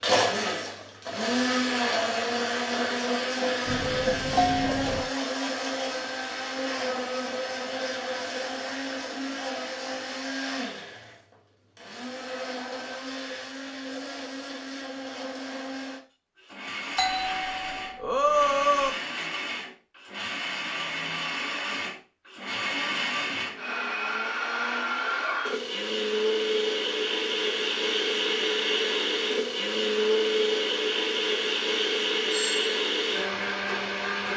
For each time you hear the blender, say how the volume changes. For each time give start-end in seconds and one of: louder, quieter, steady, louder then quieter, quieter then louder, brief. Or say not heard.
0.0-34.3 quieter then louder.